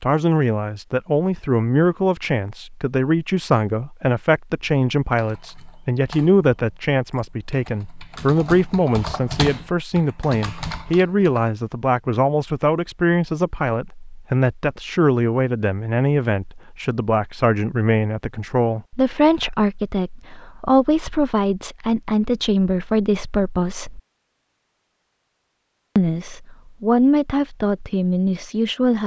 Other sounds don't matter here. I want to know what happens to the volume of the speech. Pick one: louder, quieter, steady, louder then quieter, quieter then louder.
steady.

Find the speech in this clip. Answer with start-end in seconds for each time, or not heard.
0.0-24.0, 25.9-29.0.